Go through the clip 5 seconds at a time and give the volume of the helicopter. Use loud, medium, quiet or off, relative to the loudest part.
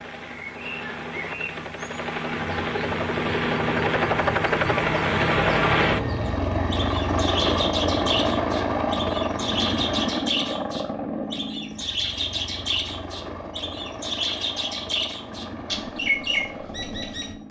loud, loud, medium, quiet.